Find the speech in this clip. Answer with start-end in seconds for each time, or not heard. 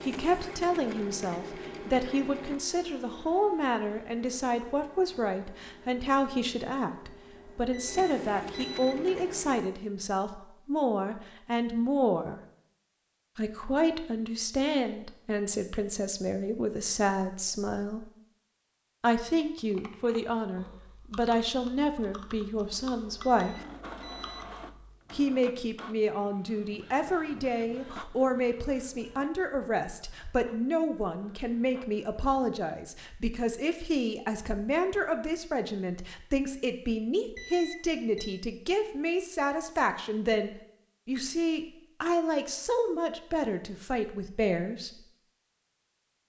0.0-12.4, 13.3-18.1, 19.0-23.6, 25.1-45.0.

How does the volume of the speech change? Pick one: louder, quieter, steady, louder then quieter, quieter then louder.
steady.